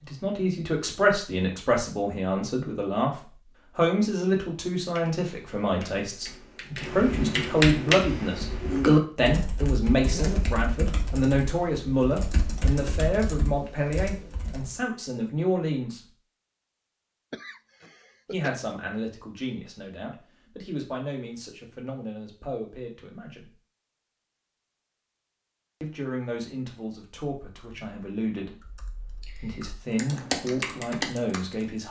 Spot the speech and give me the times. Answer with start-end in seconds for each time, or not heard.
0.0-16.1, 18.3-23.6, 25.8-31.8.